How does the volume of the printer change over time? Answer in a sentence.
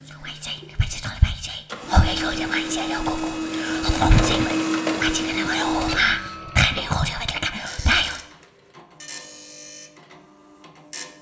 The volume of the printer goes up, then down.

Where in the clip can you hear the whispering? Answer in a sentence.
You can hear the whispering from 0.1 to 8.2 s.